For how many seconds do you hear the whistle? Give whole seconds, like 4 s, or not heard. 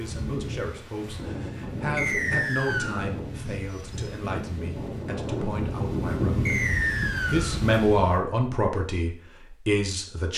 2 s.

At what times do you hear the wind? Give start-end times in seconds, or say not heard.
0.0-8.2.